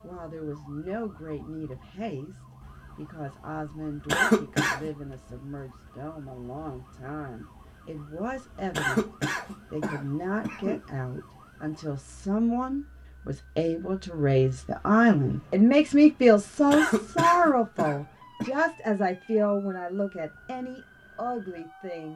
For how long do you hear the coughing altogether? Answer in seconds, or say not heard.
5 s.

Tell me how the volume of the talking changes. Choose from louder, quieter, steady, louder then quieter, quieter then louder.
louder then quieter.